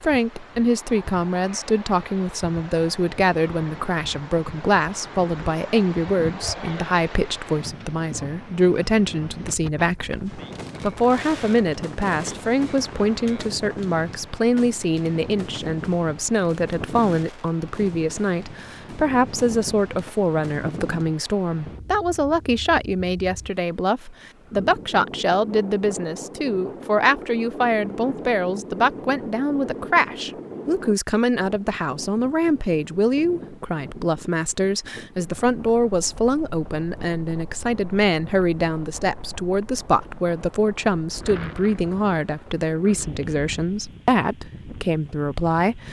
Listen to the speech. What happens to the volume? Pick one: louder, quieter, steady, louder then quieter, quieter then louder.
steady.